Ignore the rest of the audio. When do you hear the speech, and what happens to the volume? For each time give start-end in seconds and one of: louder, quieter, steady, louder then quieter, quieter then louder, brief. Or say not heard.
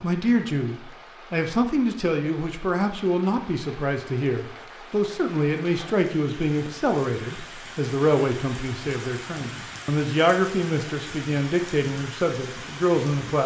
0.0-13.4 steady.